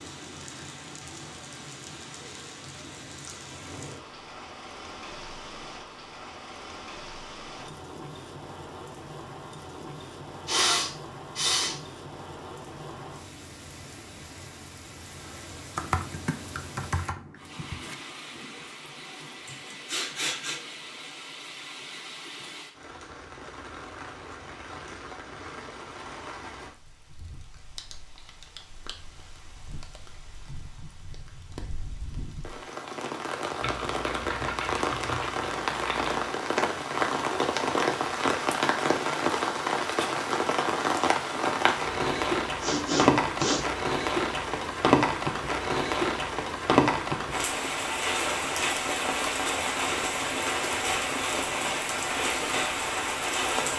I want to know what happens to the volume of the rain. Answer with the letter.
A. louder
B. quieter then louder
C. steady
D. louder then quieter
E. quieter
A.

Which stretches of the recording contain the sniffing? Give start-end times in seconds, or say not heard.
10.4-11.8, 19.4-20.6, 42.6-43.6.